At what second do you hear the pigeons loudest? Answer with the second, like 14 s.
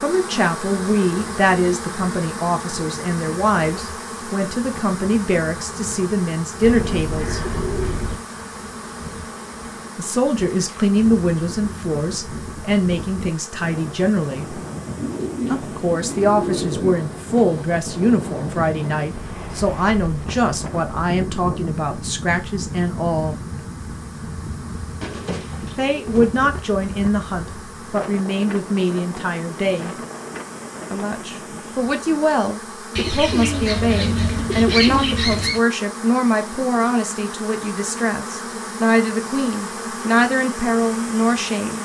35 s.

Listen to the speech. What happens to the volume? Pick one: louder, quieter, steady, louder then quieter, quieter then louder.
steady.